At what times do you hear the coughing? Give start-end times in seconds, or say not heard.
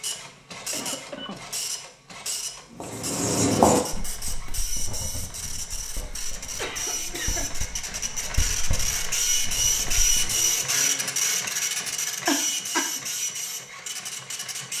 0.3-1.6, 6.5-7.5, 12.2-12.9.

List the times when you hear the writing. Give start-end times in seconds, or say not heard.
2.8-10.4.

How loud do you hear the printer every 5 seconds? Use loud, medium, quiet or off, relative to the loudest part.
medium, loud, loud.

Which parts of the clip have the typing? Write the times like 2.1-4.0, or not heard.
not heard.